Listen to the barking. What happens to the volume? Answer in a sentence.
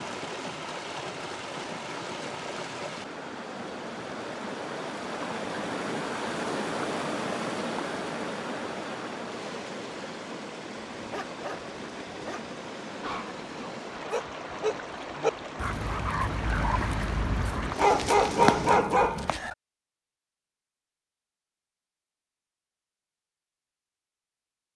The volume of the barking goes up.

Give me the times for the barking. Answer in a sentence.
You can hear the barking from 10.9 to 19.6 s.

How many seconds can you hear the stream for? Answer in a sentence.
The stream can be heard for 19 seconds in total.